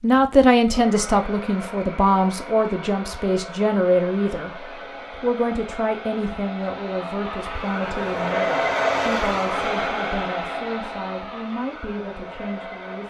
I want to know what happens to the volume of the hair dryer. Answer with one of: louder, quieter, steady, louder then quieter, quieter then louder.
louder then quieter.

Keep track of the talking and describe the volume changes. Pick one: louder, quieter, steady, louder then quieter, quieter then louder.
quieter.